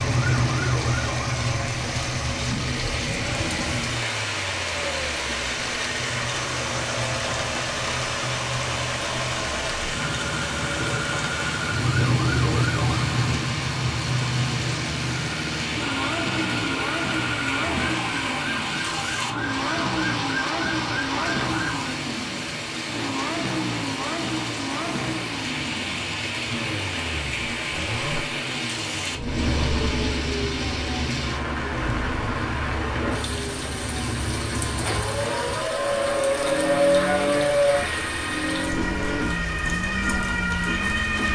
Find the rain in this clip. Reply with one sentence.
The rain can be heard from 0.1 to 41.3 s.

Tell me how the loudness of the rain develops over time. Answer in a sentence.
The volume of the rain stays about the same.